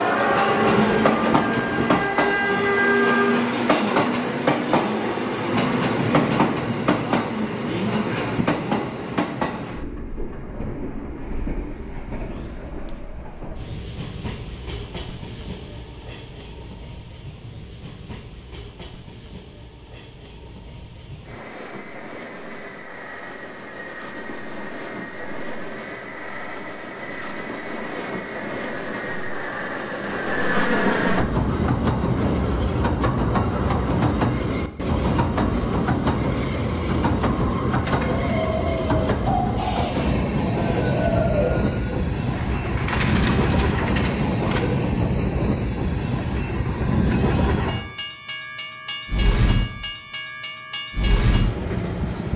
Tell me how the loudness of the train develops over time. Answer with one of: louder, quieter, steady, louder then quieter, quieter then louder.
quieter then louder.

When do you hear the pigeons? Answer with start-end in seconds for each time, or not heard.
37.7-44.6.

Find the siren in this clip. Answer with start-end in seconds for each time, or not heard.
0.0-3.4.